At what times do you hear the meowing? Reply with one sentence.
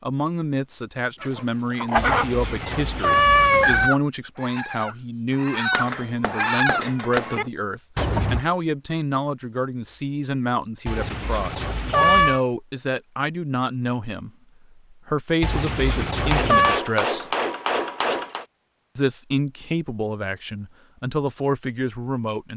You can hear the meowing from 1.9 to 3.9 s, from 10.8 to 12.4 s and from 15.4 to 16.8 s.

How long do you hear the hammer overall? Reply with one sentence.
The hammer can be heard for 4 seconds in total.